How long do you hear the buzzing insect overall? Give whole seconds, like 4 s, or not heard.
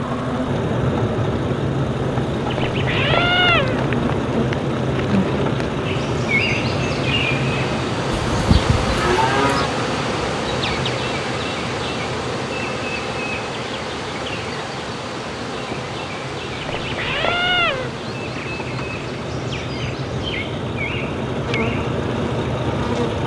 23 s.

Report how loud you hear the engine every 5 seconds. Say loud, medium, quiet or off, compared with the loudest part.
loud, loud, medium, medium, loud.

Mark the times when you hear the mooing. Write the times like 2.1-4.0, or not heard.
8.1-9.7.